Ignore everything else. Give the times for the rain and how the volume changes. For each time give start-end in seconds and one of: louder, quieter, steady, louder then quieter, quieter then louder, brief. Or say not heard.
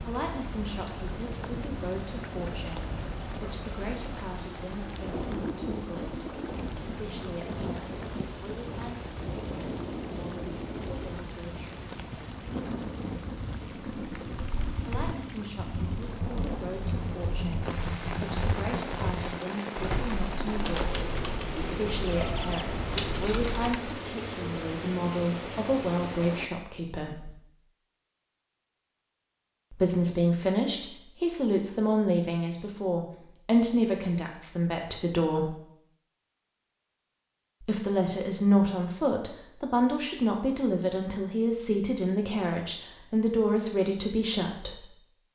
0.0-26.5 steady.